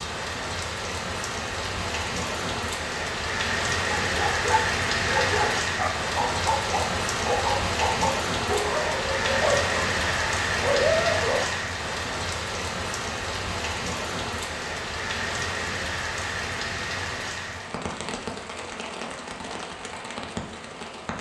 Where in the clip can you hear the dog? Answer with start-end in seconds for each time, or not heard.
4.0-11.6.